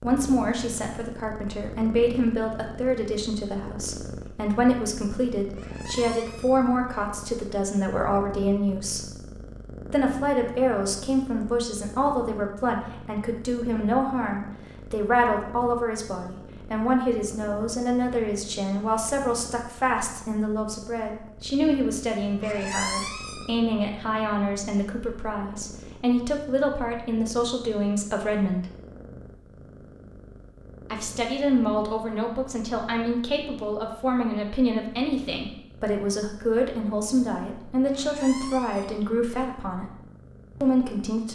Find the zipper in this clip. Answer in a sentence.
You can't hear the zipper here.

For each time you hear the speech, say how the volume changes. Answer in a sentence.
The speech can be heard from 0.0 to 9.1 s, at a steady volume; from 9.9 to 28.6 s, at a steady volume; from 30.9 to 40.0 s, at a steady volume; and briefly from 40.6 to 41.3 s.